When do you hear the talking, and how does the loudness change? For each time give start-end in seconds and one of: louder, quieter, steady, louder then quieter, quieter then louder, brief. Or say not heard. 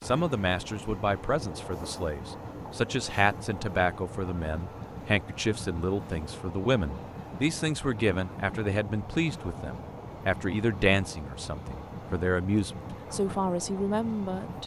0.0-14.6 steady.